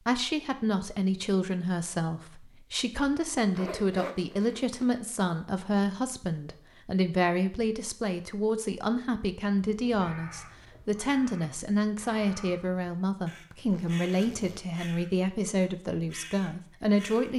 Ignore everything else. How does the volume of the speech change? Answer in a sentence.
The loudness of the speech stays about the same.